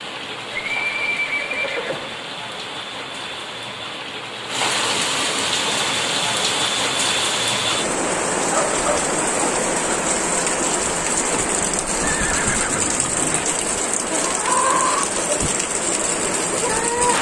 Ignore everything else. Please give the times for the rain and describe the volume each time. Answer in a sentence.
You can hear the rain from 0.0 to 17.1 s, getting louder.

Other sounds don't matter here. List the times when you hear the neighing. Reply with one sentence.
You can hear the neighing from 0.5 to 2.1 s and from 12.0 to 13.4 s.